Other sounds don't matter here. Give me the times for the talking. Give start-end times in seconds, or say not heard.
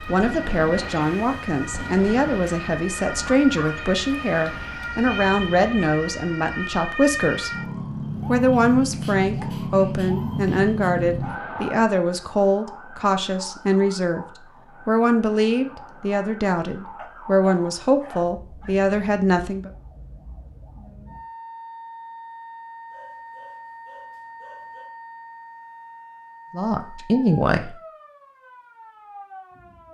0.1-7.5, 8.2-14.2, 14.8-19.7, 26.5-27.8.